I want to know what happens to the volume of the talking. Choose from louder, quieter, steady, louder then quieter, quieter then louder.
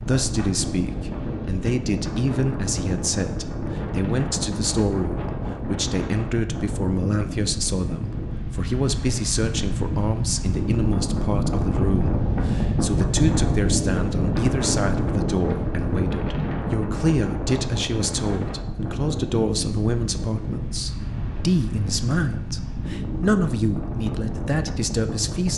steady.